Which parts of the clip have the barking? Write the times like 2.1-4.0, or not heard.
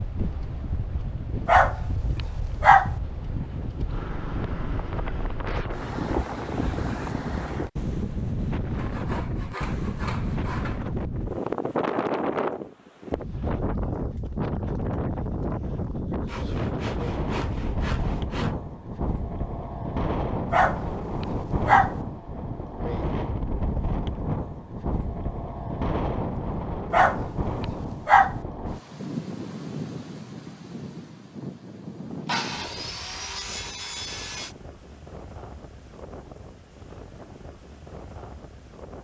1.4-2.9, 20.5-21.9, 26.9-28.4.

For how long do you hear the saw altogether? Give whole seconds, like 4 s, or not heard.
7 s.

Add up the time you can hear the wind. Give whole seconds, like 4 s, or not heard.
39 s.